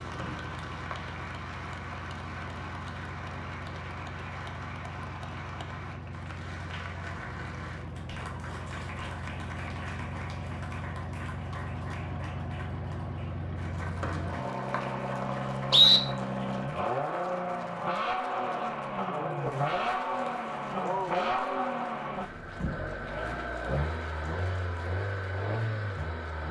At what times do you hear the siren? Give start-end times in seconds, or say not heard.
not heard.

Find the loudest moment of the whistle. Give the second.
16 s.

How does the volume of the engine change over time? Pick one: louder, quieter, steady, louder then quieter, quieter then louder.
louder.